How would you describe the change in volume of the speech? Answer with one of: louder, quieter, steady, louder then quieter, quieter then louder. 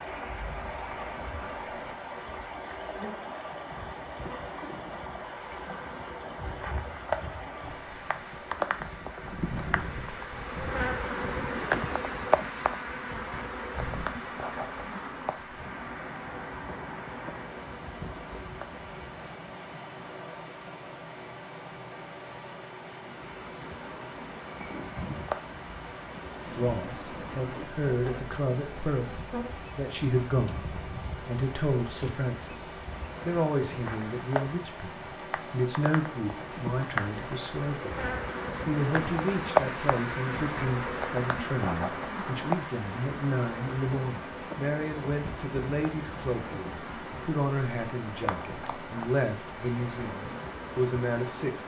steady.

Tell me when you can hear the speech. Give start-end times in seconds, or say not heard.
26.4-38.0, 38.6-51.6.